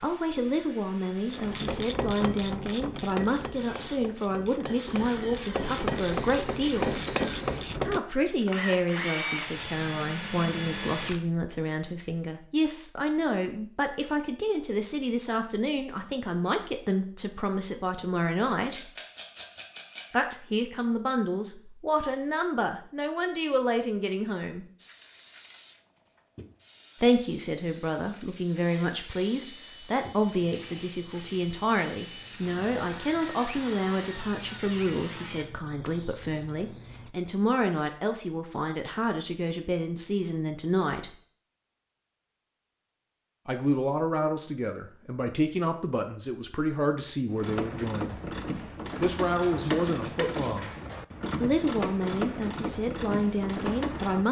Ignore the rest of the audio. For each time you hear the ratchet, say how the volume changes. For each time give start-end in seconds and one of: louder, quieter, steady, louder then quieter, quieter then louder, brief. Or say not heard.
1.2-8.0 quieter then louder
47.3-54.2 steady.